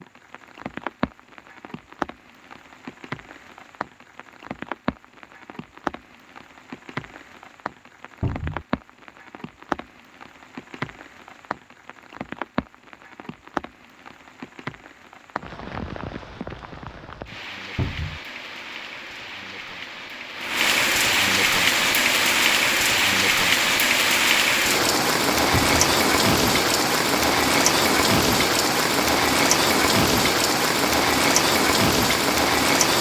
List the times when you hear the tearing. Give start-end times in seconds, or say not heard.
not heard.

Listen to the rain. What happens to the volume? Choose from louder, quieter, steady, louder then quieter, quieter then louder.
louder.